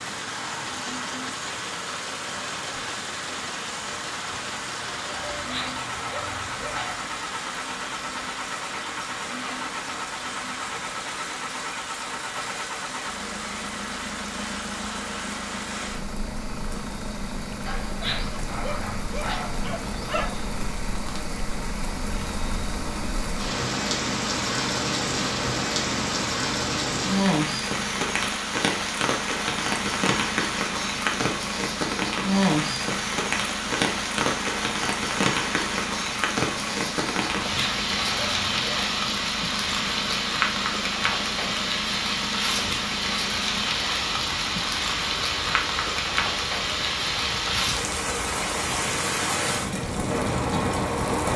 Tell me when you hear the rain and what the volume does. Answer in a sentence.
The rain can be heard from 0.0 to 51.3 s, getting louder.